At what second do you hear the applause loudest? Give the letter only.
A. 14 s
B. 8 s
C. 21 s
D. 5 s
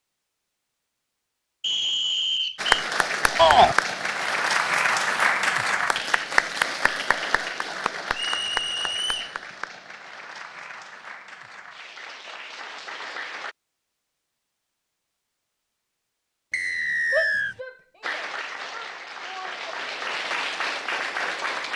D.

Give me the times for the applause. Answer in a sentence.
The applause can be heard from 2.5 to 13.6 s and from 18.0 to 21.7 s.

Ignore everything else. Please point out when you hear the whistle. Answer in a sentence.
The whistle can be heard from 1.6 to 2.8 s, from 8.1 to 9.3 s and from 16.5 to 17.6 s.